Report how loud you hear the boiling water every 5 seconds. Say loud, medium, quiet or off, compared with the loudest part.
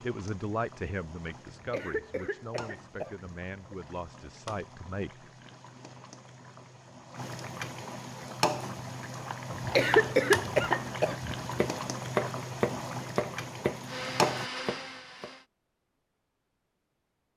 quiet, loud, loud, off.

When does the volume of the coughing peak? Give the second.
10 s.